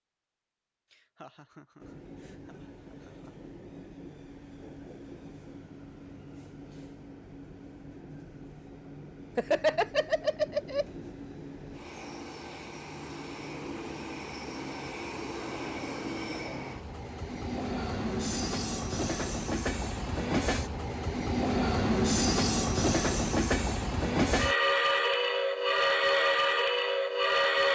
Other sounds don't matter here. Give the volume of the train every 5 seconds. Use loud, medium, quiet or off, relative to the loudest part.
quiet, quiet, quiet, medium, loud, loud.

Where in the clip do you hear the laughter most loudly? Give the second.
10 s.